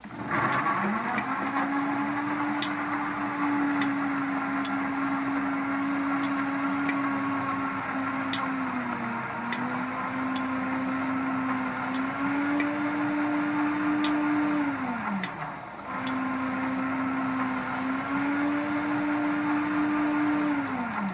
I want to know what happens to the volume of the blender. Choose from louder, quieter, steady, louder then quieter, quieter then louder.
steady.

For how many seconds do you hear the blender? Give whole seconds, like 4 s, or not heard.
21 s.